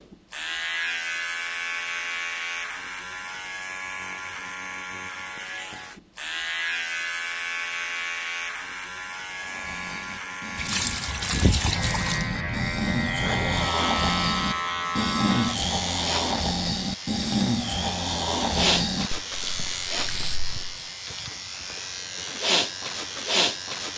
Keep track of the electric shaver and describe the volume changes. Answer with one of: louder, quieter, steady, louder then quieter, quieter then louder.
steady.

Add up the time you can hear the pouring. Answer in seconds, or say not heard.
2 s.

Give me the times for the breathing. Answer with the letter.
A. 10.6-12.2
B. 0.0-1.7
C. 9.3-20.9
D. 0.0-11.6
C.